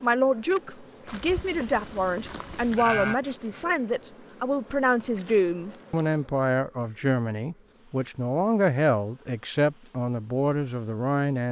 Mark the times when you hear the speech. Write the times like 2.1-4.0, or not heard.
0.0-11.4.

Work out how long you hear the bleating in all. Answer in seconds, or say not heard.
2 s.